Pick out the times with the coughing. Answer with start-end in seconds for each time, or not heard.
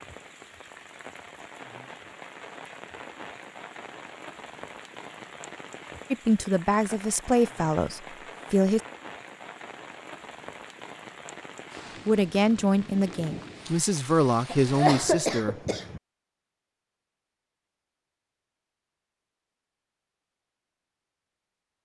14.5-16.0.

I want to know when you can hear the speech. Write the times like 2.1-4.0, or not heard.
6.1-8.8, 12.1-15.6.